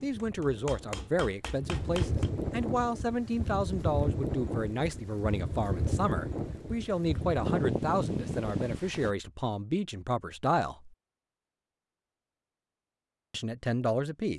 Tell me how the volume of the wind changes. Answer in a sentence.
The volume of the wind goes up.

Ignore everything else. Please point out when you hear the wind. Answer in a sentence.
The wind can be heard from 0.0 to 9.2 s.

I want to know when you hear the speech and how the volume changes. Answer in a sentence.
You can hear the speech from 0.0 to 10.9 s, at a steady volume; and briefly from 13.3 to 14.3 s.